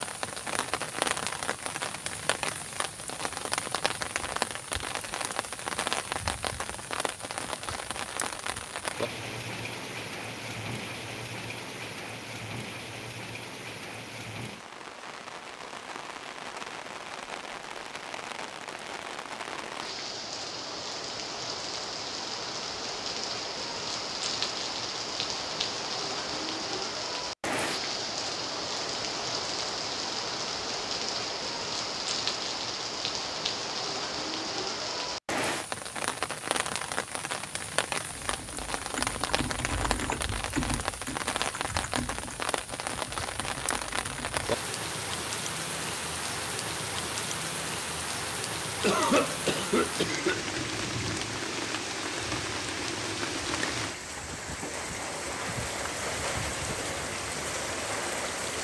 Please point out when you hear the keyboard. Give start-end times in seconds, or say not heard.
38.1-44.6.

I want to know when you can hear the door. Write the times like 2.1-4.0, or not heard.
not heard.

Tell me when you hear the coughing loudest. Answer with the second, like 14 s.
49 s.